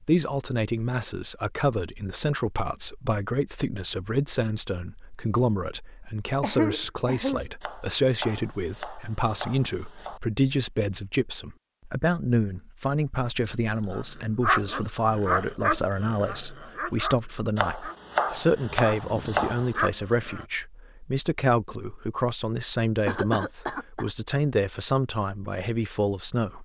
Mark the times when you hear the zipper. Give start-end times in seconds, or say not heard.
not heard.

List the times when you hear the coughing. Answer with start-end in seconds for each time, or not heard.
6.4-7.5, 23.1-24.1.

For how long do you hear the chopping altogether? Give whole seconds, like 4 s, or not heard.
5 s.